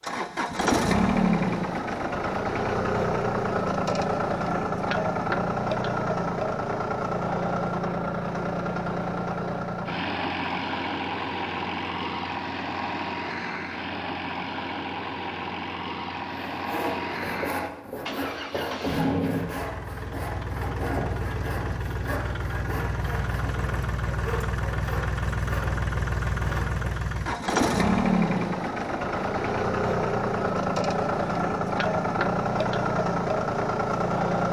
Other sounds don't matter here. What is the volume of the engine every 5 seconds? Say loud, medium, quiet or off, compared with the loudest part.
loud, loud, medium, medium, medium, loud, loud.